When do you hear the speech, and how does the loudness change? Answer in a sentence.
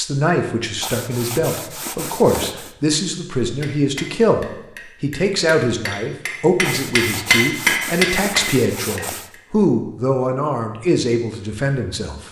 You can hear the speech from 0.0 to 12.2 s, at a steady volume.